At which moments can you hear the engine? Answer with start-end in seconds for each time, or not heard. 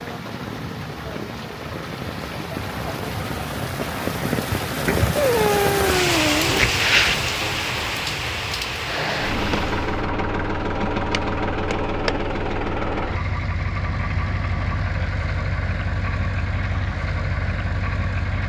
8.8-18.4.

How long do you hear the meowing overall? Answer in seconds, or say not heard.
2 s.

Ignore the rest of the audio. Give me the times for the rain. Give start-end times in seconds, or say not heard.
0.0-10.1.